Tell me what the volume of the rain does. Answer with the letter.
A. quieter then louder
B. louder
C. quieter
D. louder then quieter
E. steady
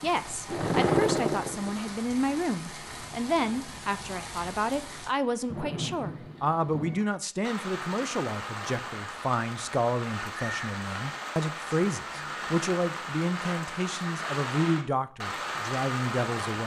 B.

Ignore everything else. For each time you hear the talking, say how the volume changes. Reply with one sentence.
You can hear the talking from 0.0 to 16.6 s, at a steady volume.